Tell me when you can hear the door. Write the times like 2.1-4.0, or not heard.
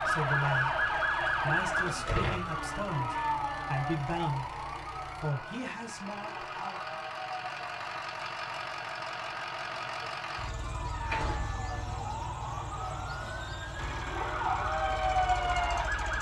1.8-2.5, 10.6-11.6.